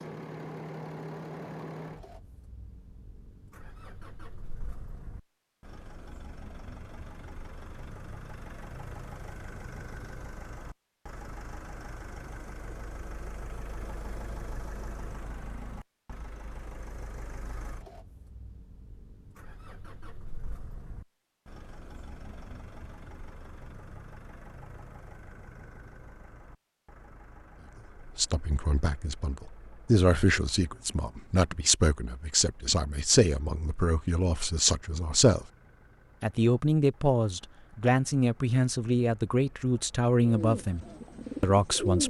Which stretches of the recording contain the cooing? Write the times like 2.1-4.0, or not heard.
40.2-42.0.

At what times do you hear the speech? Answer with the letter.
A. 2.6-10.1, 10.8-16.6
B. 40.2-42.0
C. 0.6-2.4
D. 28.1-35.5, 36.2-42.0
D.